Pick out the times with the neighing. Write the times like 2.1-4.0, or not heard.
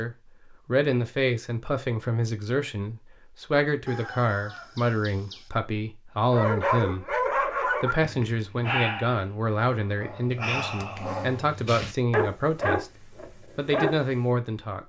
not heard.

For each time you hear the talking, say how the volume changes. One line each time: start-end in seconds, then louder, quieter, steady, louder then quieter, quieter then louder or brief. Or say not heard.
0.0-14.8 steady.